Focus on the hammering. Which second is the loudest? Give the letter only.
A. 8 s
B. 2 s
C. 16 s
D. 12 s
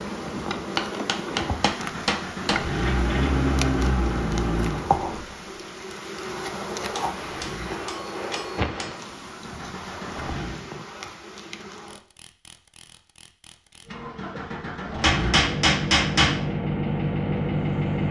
C.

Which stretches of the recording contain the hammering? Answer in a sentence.
You can hear the hammering from 0.8 to 2.6 s, from 6.9 to 8.9 s and from 15.0 to 16.4 s.